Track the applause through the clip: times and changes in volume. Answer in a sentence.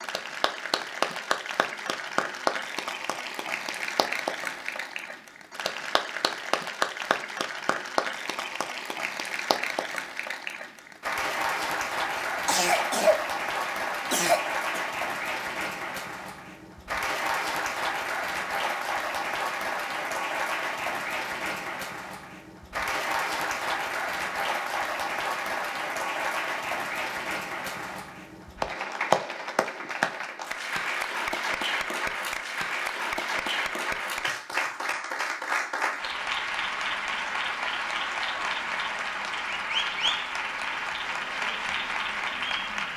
You can hear the applause from 0.0 to 42.9 s, at a steady volume.